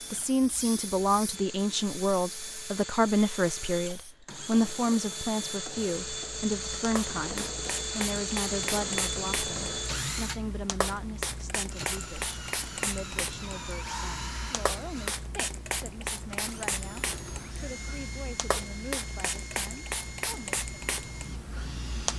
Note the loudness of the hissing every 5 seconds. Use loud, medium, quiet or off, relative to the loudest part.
medium, loud, loud, loud, loud.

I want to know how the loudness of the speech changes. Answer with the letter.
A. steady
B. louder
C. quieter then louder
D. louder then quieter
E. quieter
E.